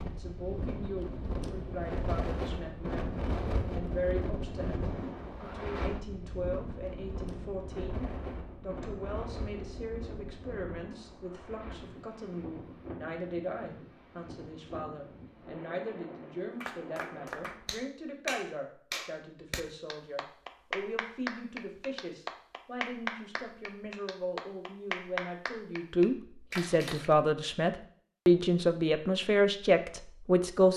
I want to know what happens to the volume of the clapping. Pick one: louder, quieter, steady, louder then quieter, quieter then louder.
steady.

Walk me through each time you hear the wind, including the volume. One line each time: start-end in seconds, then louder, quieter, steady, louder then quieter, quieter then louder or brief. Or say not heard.
0.0-17.8 quieter.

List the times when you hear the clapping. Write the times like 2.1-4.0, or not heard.
16.6-27.1.